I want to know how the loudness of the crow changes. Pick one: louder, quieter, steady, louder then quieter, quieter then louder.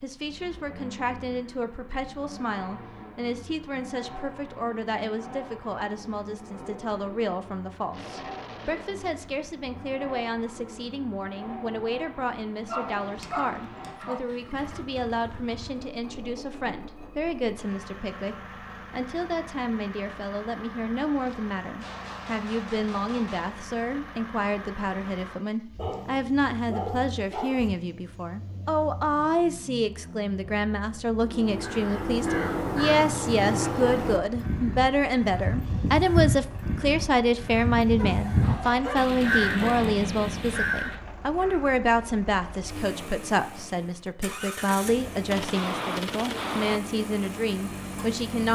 steady.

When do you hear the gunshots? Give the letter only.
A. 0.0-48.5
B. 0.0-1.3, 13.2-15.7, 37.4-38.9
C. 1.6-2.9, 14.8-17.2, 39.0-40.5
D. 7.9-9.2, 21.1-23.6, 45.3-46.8
D.